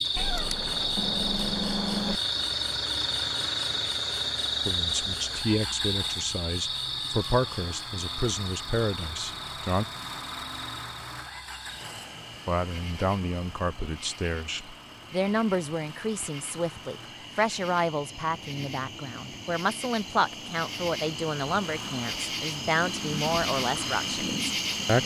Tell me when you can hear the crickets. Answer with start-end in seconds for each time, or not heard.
0.0-25.0.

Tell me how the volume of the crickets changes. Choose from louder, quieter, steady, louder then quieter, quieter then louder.
quieter then louder.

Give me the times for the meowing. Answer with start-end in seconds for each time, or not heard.
0.1-2.2.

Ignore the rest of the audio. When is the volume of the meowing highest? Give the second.
2 s.